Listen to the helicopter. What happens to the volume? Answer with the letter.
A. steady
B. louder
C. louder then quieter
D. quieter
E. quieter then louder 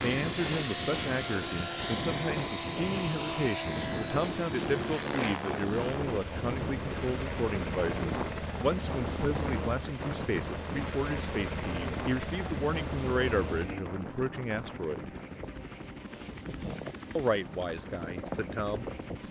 D.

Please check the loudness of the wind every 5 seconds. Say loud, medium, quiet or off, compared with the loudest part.
loud, loud, loud, medium.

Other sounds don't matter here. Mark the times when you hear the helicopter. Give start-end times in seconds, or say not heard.
0.0-19.2.